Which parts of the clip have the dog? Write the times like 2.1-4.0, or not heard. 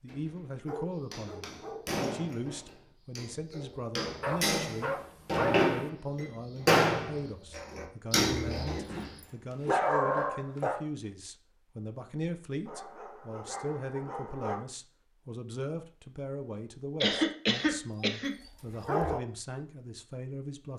0.1-1.9, 4.2-5.7, 8.7-10.8, 12.7-14.7, 18.0-19.2.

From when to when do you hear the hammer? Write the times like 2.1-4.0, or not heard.
1.1-8.9.